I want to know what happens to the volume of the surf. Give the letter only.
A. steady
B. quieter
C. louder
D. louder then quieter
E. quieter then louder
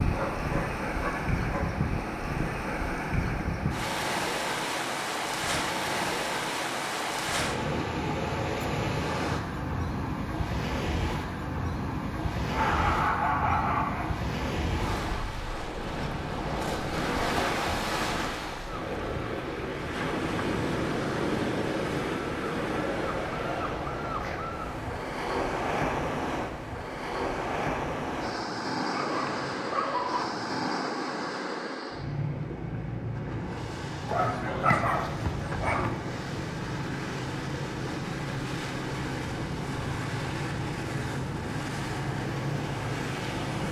A.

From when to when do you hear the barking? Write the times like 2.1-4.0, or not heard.
0.1-1.8, 12.5-14.1, 28.9-30.2, 34.0-36.0.